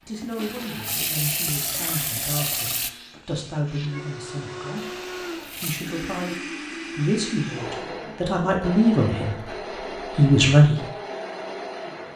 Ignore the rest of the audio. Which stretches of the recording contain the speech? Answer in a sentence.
The speech can be heard from 0.0 to 10.8 s.